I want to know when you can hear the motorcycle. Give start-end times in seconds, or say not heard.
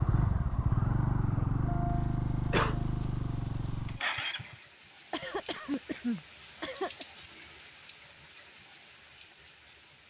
0.0-4.7.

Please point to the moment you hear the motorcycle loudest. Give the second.
1 s.